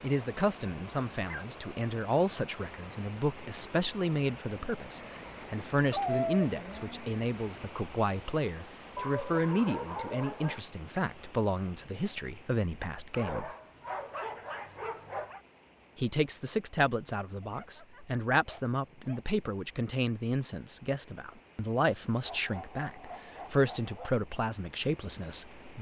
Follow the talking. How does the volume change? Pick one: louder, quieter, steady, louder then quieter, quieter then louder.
steady.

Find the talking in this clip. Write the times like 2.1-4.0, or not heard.
0.0-13.5, 15.9-25.7.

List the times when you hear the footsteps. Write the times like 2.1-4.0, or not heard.
not heard.